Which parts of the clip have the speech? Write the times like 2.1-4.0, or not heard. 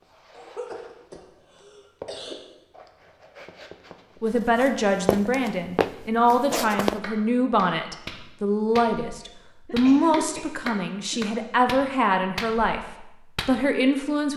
4.2-14.3.